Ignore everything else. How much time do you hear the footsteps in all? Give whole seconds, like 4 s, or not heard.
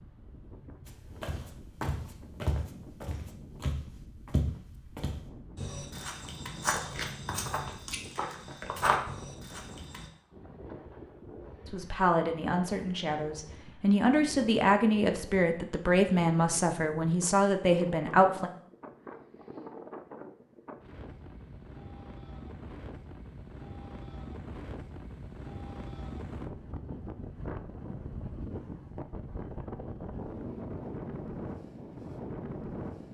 9 s.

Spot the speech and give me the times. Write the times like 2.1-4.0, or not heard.
11.7-18.5.